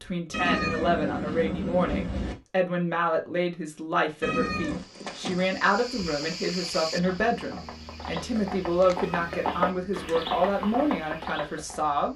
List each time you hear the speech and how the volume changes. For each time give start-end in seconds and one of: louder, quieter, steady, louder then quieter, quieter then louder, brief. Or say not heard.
0.0-12.1 steady.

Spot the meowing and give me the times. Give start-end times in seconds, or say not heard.
0.3-2.4, 4.2-4.8, 9.0-10.1.